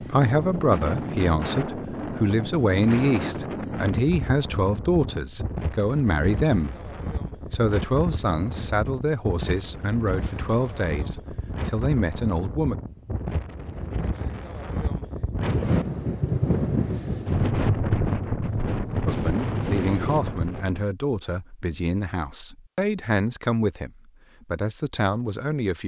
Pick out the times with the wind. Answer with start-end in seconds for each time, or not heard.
0.0-20.9.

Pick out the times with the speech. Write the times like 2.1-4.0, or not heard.
0.0-12.8, 19.1-25.8.